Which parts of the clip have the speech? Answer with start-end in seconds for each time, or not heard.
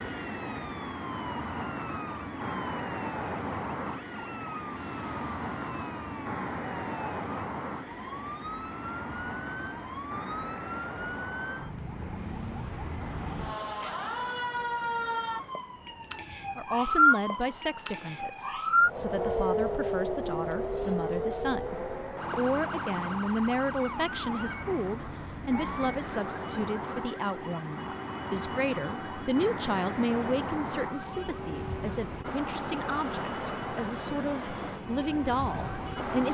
16.6-36.2.